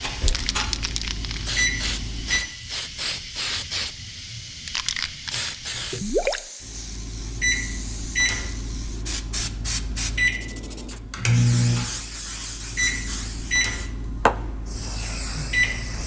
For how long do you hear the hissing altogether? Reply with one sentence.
You can hear the hissing for 16 seconds altogether.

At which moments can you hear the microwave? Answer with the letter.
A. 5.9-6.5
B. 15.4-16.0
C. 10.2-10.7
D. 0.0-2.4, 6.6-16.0
D.